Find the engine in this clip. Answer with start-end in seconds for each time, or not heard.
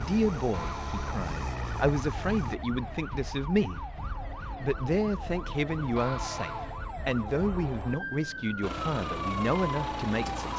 0.0-2.6, 8.6-10.5.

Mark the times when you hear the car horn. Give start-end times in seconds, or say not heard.
0.5-1.2, 6.0-6.8.